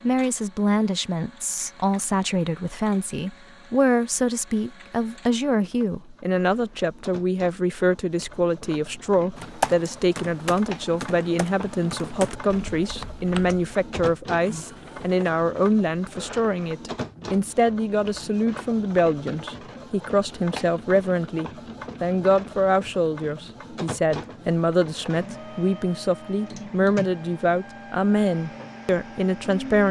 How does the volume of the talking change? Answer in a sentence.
The volume of the talking stays about the same.